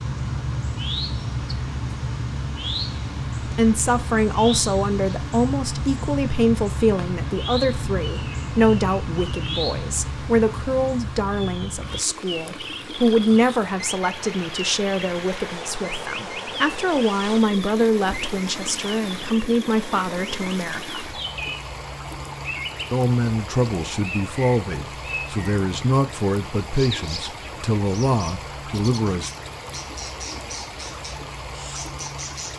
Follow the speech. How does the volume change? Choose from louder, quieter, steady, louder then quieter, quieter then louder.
steady.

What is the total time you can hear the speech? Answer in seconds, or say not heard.
24 s.